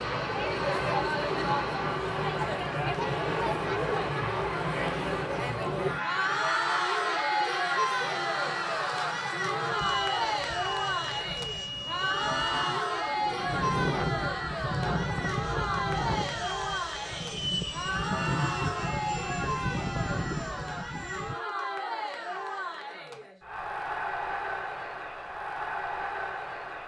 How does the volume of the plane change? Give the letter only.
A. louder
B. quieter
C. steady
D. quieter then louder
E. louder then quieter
C.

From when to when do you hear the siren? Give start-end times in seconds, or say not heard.
not heard.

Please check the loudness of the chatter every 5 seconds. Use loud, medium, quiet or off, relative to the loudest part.
loud, loud, loud, loud, medium, medium.